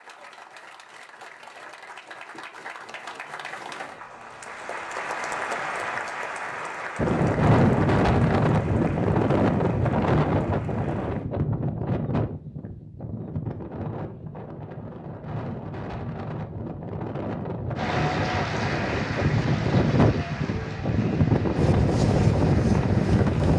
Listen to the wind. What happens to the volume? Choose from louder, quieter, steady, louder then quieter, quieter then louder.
quieter then louder.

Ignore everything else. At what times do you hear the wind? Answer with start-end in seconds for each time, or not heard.
7.0-23.5.